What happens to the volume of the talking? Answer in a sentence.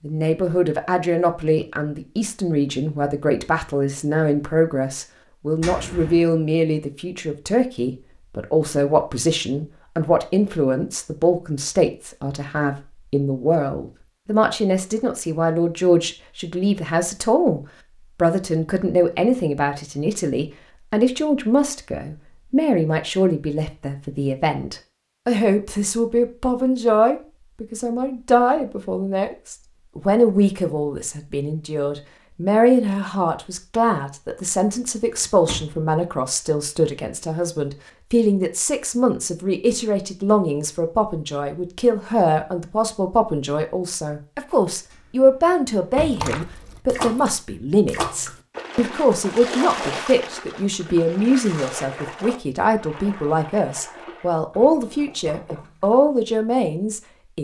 The loudness of the talking stays about the same.